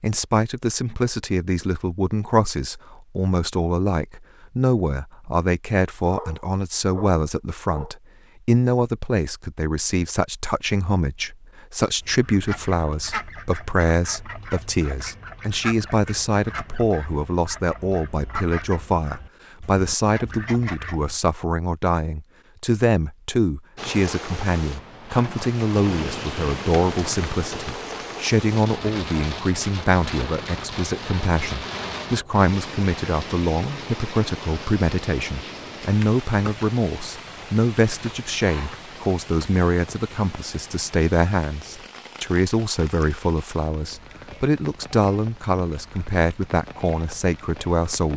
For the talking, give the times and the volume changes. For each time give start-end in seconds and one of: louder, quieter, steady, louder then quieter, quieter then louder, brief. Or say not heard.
0.0-48.1 steady.